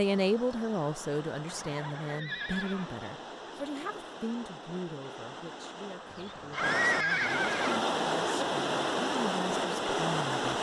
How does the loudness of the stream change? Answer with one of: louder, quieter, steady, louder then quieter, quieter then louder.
louder.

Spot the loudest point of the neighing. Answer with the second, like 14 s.
7 s.